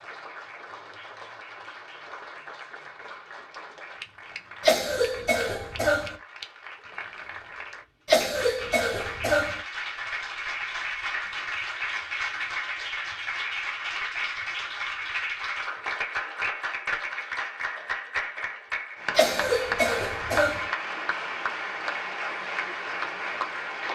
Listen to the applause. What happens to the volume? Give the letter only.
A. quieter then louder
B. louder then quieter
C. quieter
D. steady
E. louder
E.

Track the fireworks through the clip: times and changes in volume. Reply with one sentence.
You can't hear the fireworks here.